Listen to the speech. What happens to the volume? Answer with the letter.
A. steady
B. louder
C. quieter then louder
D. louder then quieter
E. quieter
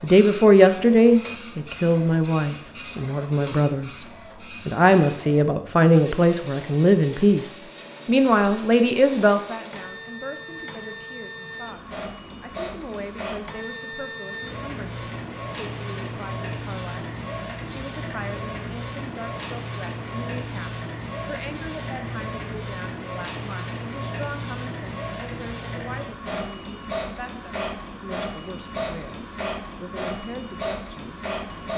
E.